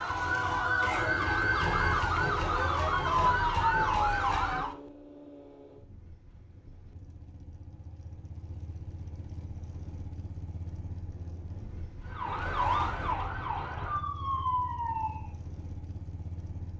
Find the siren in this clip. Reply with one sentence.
The siren can be heard from 0.0 to 4.8 s and from 12.1 to 15.3 s.